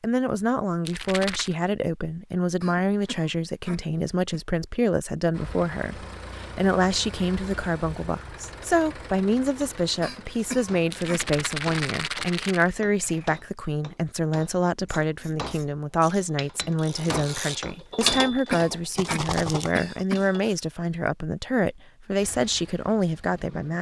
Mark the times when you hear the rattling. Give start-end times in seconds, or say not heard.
0.8-1.6, 10.9-12.7, 18.9-19.7.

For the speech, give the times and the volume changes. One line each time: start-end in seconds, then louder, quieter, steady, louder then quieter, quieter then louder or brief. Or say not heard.
0.0-23.7 steady.